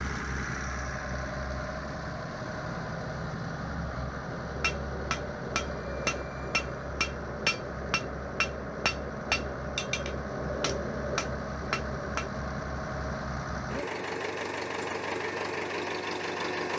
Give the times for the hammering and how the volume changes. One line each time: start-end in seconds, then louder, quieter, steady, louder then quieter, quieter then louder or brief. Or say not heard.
4.3-12.3 steady.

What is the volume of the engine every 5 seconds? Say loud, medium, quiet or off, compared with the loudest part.
loud, medium, loud, loud.